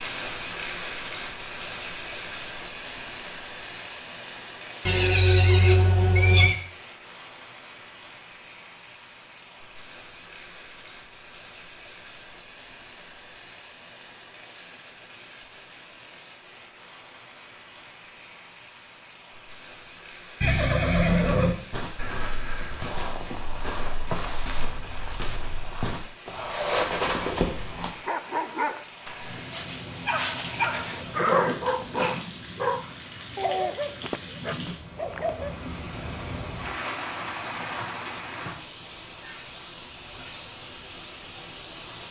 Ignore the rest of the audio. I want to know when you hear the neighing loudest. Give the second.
6 s.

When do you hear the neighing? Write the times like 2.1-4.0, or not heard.
4.8-6.5, 20.4-21.6, 31.1-32.2.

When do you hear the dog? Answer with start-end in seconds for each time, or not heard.
27.9-35.7.